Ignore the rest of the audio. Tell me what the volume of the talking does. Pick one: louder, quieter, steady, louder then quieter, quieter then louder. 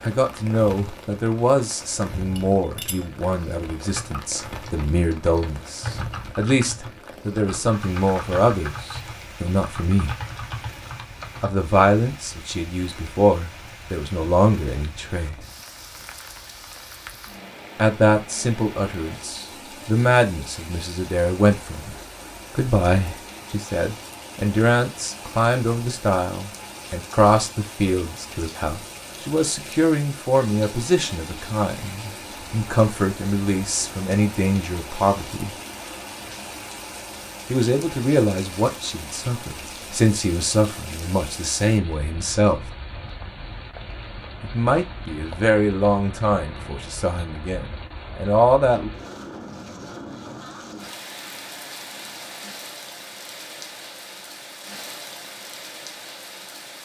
steady.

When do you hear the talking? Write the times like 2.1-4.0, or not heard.
0.0-10.2, 11.4-15.3, 17.8-21.9, 22.6-35.5, 37.5-42.6, 44.4-48.9.